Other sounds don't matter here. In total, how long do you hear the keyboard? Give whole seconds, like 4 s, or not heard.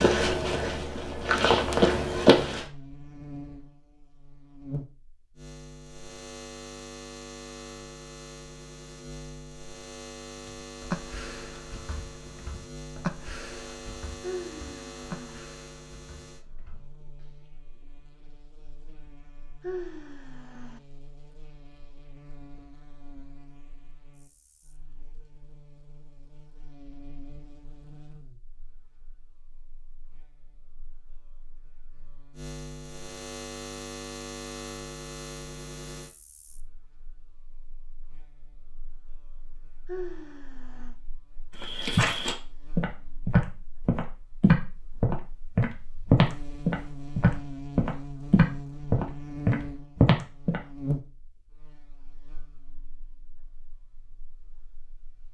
7 s.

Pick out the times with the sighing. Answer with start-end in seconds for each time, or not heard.
14.2-15.4, 19.6-20.8, 39.9-41.0.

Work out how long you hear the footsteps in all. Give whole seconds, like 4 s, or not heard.
12 s.